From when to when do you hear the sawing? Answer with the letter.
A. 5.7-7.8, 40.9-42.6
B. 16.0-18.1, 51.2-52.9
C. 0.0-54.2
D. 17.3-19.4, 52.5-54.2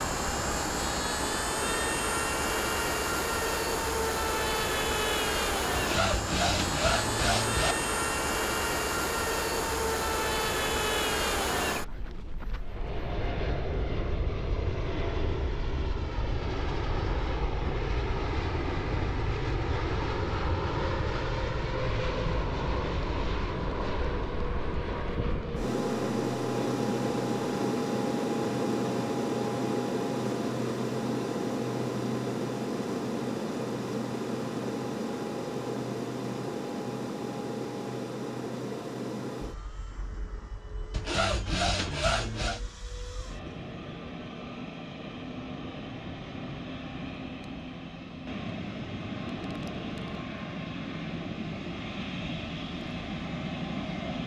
A.